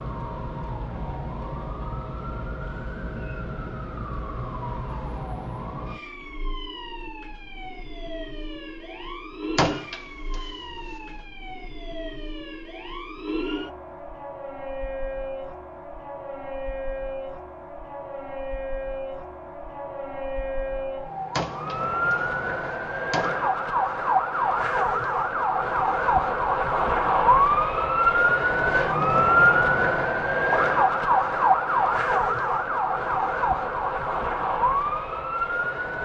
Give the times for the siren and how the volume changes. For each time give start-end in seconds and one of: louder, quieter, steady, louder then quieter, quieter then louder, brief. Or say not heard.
0.0-36.0 louder.